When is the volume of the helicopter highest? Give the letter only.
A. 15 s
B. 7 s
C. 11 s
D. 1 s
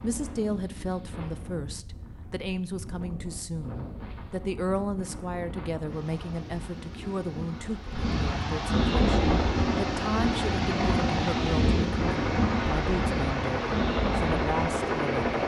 A.